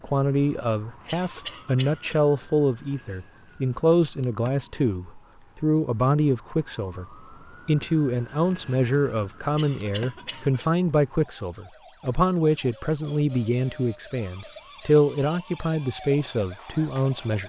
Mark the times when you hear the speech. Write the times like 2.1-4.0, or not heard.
0.0-7.0, 7.7-17.4.